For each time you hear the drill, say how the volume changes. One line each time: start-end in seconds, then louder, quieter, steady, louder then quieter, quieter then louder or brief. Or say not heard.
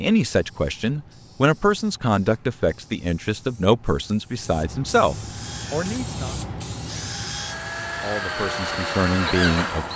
5.2-9.9 louder.